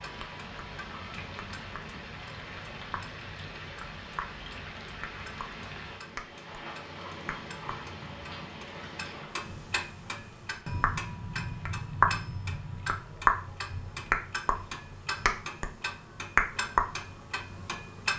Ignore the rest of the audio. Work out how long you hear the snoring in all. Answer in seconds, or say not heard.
not heard.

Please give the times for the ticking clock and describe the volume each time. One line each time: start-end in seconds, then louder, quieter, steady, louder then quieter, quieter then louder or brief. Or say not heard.
0.0-18.1 louder.